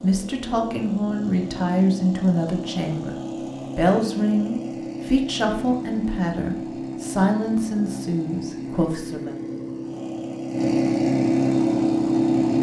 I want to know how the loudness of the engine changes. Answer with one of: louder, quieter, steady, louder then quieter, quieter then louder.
louder.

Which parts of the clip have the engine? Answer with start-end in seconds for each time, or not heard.
0.0-12.5.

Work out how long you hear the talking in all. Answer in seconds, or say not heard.
9 s.